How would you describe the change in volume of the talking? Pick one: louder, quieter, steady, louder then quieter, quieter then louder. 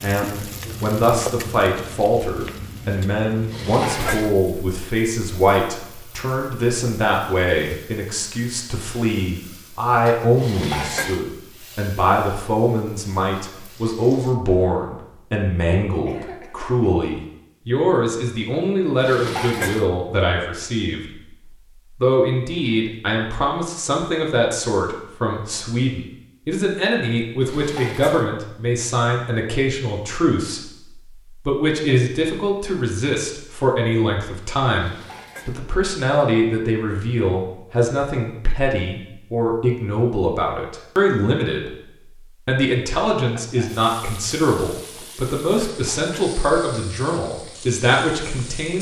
steady.